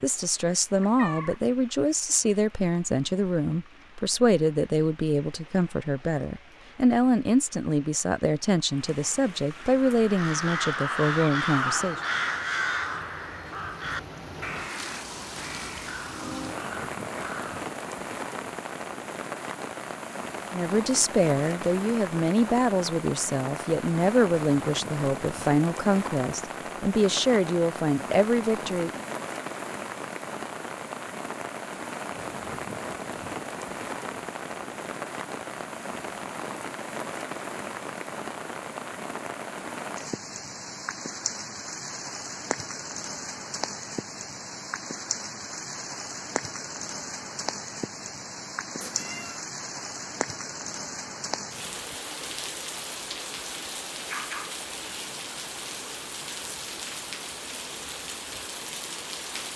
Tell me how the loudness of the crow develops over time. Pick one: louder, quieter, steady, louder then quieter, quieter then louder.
quieter.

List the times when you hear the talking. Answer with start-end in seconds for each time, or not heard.
0.0-12.0, 20.5-29.1.